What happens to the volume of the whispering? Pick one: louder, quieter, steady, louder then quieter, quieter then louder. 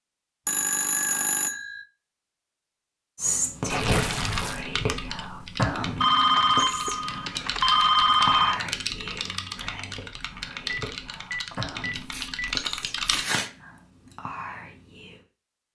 quieter.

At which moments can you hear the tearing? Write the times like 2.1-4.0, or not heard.
3.7-4.7, 11.5-13.5.